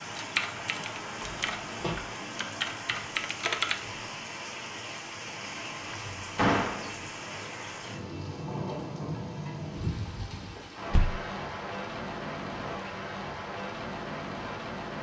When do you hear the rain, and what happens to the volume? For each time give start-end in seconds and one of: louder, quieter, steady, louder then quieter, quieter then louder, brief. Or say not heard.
0.0-14.9 steady.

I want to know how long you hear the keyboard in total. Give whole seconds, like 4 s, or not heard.
4 s.